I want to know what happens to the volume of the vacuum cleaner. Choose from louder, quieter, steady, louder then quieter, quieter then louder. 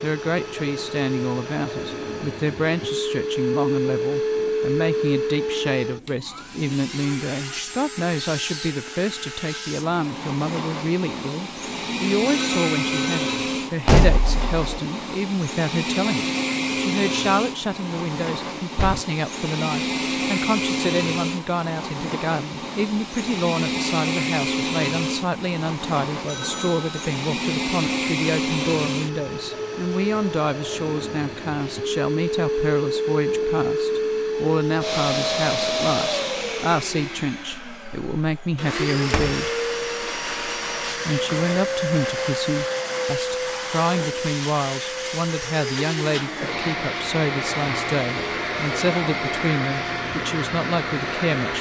steady.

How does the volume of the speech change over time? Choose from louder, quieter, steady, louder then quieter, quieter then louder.
steady.